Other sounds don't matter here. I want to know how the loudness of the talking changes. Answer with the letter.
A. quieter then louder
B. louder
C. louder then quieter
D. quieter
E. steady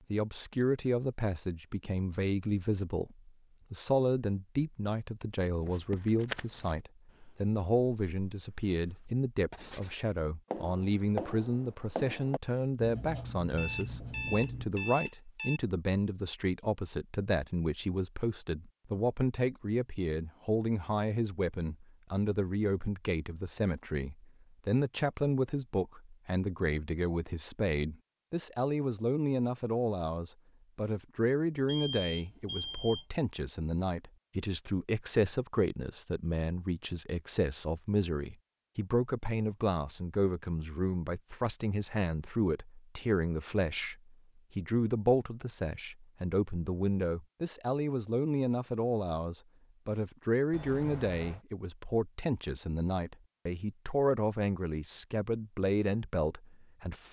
E.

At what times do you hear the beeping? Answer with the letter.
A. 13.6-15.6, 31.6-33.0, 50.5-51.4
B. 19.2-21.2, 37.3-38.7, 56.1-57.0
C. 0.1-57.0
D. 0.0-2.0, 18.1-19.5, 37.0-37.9
A.